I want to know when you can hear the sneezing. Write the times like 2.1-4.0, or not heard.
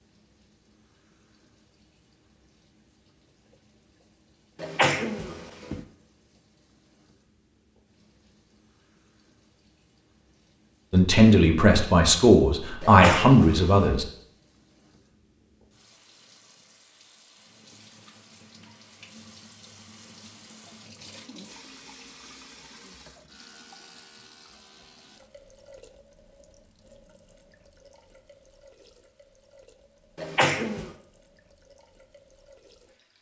4.6-5.8, 12.8-14.0, 30.1-30.9.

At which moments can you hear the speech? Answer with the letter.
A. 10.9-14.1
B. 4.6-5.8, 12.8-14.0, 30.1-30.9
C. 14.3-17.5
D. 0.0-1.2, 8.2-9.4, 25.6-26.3
A.